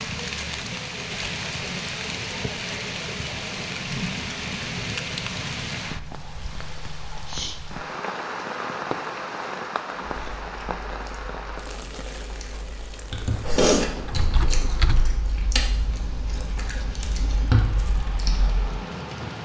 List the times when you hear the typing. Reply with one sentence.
The typing can be heard from 13.4 to 15.2 s.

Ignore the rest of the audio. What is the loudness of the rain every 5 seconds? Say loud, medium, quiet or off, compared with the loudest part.
loud, loud, medium, medium.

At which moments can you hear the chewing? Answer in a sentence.
You can hear the chewing from 10.2 to 18.7 s.